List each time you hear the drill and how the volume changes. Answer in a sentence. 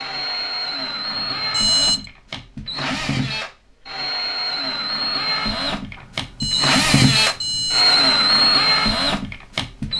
You can hear the drill from 0.0 to 9.9 s, getting louder.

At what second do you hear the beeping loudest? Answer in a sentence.
The loudest moment of the beeping is at 2 seconds.